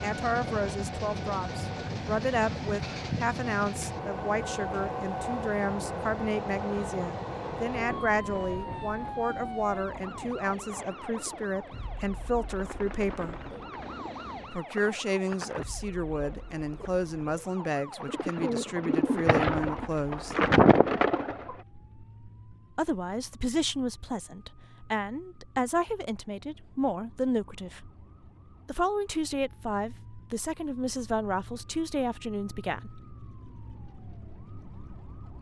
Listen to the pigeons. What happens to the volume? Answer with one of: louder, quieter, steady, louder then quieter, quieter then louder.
louder.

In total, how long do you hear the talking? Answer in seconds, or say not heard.
29 s.